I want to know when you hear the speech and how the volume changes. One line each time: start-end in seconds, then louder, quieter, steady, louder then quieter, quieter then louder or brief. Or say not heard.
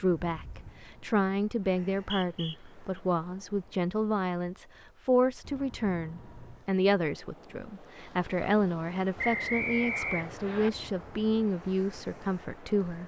0.0-13.0 steady.